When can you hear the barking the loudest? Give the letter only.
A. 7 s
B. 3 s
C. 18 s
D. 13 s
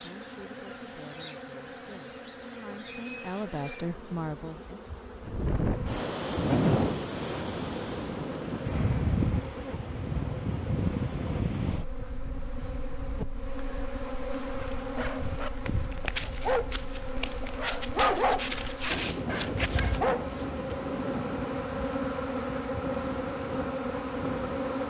C.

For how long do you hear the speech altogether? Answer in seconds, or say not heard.
5 s.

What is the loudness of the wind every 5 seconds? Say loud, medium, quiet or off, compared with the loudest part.
off, loud, medium, medium, medium.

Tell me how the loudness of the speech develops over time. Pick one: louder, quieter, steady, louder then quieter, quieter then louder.
louder.